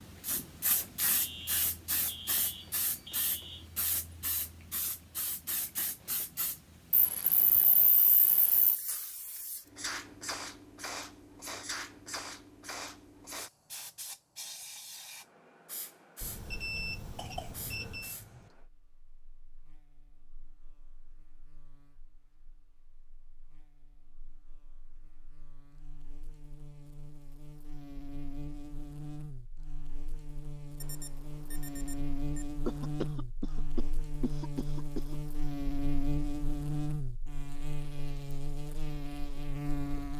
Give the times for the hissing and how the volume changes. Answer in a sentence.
You can hear the hissing from 0.0 to 18.6 s, getting quieter.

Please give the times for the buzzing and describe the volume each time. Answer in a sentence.
The buzzing can be heard from 18.5 to 40.1 s, getting louder.